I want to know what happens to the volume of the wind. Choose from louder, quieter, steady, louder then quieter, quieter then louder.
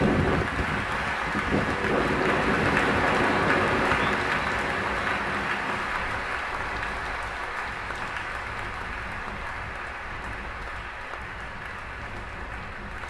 quieter.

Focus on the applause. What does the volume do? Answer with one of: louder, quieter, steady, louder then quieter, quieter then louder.
quieter.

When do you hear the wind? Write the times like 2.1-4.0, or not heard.
0.0-13.0.